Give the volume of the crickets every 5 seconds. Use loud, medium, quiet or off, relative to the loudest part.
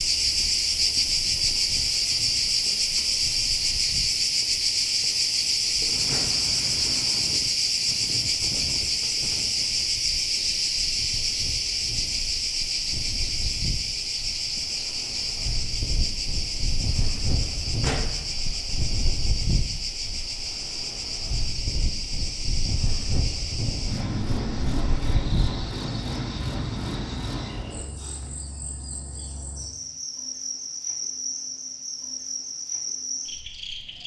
loud, loud, loud, medium, medium, medium, medium.